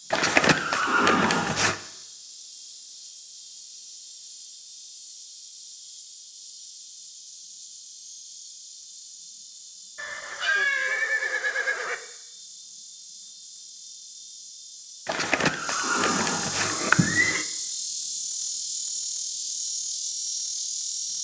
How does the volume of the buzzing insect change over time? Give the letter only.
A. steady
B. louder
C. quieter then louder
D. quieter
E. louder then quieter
B.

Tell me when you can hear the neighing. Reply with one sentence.
The neighing can be heard from 0.1 to 1.8 s, from 9.9 to 11.9 s and from 15.1 to 17.4 s.